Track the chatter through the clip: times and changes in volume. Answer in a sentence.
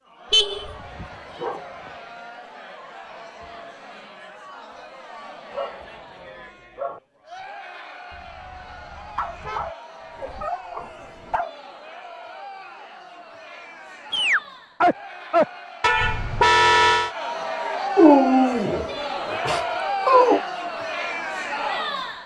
You can hear the chatter from 0.0 to 22.2 s, getting louder.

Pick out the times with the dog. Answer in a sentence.
You can hear the dog from 0.6 to 1.9 s, from 5.5 to 7.0 s, from 9.2 to 11.6 s, from 14.1 to 15.4 s and from 17.9 to 20.4 s.